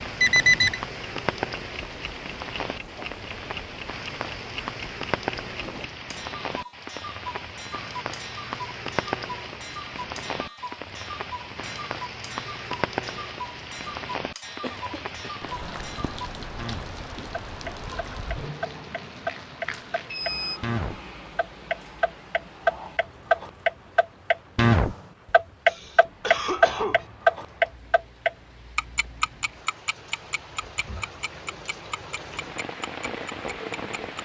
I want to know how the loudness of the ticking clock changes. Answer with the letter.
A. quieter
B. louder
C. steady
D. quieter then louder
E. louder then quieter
B.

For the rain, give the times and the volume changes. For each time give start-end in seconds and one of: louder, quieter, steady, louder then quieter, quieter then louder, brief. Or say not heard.
0.0-34.2 quieter then louder.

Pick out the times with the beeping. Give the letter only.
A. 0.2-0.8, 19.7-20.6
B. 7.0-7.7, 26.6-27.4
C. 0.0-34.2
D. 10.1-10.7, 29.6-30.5
A.